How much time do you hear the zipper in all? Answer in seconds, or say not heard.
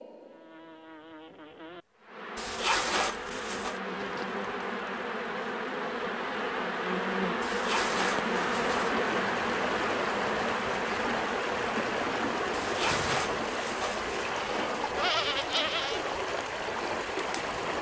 5 s.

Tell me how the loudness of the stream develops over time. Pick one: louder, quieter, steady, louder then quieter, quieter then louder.
louder.